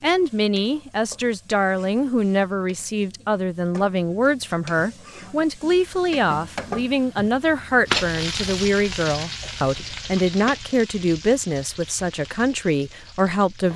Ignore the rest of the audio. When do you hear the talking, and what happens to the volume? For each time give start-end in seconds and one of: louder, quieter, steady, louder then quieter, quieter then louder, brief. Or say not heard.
0.0-13.7 steady.